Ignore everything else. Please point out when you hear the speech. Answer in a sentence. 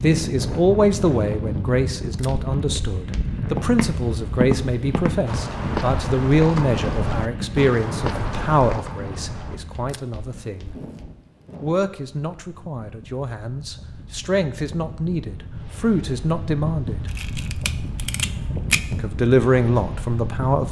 The speech can be heard from 0.0 to 10.8 s, from 11.6 to 17.1 s and from 18.9 to 20.6 s.